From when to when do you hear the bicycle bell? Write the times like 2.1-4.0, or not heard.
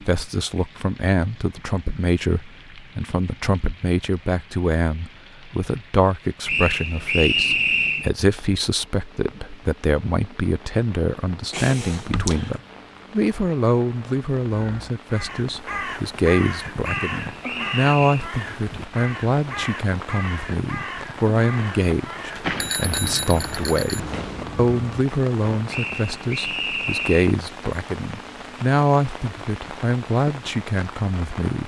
11.5-12.6, 22.4-24.4.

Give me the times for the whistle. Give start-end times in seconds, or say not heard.
6.5-8.1, 16.8-18.2, 25.7-27.4.